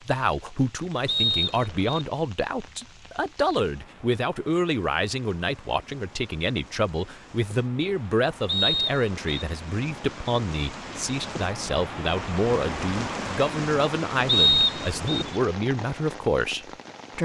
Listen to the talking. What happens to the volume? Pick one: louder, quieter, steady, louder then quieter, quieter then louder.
steady.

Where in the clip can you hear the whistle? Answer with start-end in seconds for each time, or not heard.
1.1-2.0, 8.4-9.4, 14.2-15.2.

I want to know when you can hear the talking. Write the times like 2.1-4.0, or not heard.
0.1-17.2.